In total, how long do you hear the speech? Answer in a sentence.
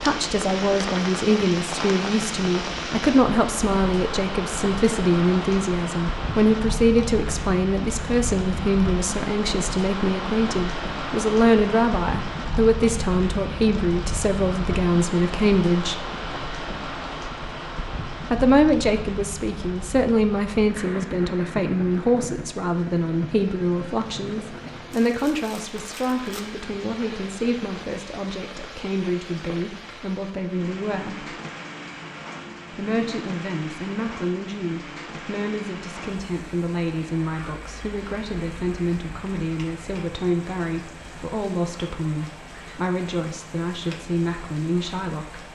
You can hear the speech for 42 seconds altogether.